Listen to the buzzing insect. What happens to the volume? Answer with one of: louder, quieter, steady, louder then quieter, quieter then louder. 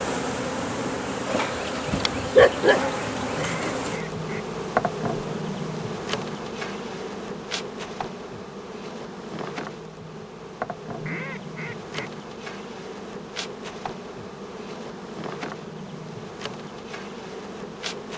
quieter.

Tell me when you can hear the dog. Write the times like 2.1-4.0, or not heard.
1.4-2.9.